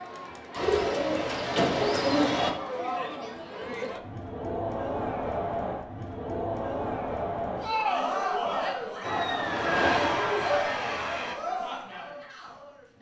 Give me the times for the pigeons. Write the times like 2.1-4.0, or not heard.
0.6-2.5.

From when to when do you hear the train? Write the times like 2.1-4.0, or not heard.
9.0-11.3.